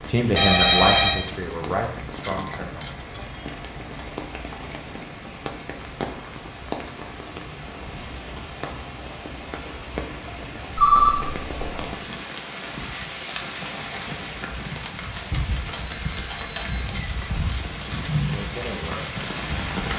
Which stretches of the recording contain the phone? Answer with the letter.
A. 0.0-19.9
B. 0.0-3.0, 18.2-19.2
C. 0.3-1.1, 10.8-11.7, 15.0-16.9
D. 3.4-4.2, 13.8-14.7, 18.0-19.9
C.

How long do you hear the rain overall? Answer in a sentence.
The rain can be heard for 20 seconds in total.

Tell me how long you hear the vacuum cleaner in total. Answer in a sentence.
The vacuum cleaner can't be heard in this clip.